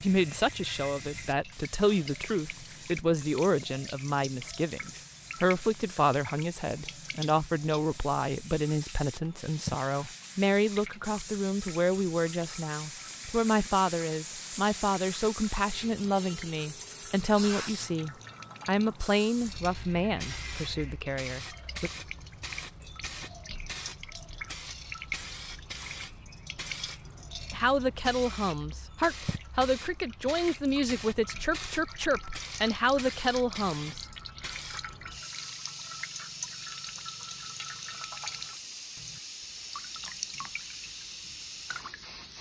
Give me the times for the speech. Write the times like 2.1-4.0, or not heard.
0.0-21.9, 27.5-34.0.